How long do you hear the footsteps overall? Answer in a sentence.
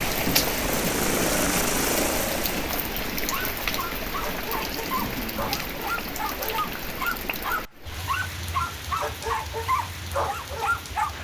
You can't hear the footsteps here.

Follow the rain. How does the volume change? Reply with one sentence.
The volume of the rain goes down.